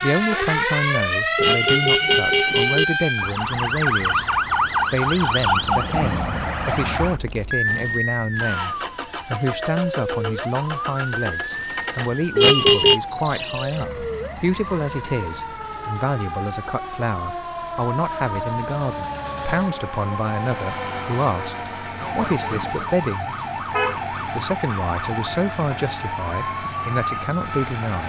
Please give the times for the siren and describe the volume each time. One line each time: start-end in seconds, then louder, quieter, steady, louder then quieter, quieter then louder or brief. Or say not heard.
0.0-28.0 quieter.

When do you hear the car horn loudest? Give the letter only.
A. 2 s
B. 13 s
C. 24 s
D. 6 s
B.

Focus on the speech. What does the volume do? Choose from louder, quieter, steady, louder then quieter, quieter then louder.
steady.